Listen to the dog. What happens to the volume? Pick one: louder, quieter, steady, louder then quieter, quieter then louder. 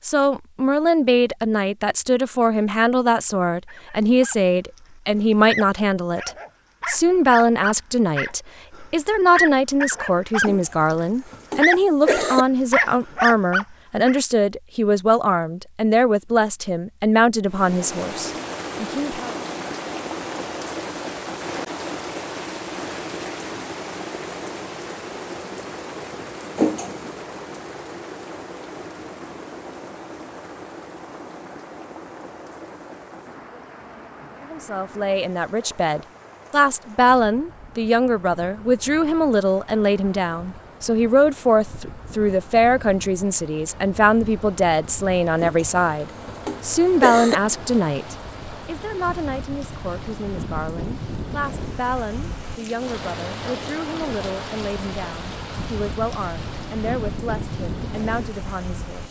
louder.